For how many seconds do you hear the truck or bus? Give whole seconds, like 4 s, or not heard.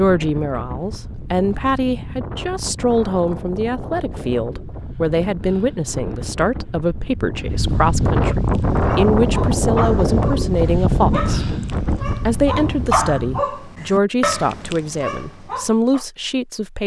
not heard.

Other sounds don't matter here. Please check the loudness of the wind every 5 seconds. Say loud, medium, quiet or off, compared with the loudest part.
medium, loud, loud, off.